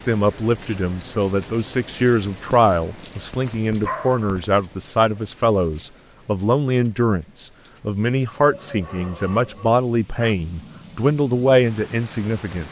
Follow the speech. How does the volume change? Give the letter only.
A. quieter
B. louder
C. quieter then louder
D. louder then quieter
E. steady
E.